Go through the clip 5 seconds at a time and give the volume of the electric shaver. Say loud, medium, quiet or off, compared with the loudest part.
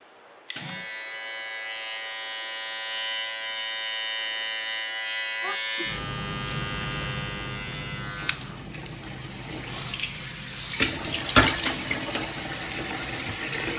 loud, loud, medium.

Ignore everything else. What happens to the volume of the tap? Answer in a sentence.
The loudness of the tap goes up, then down.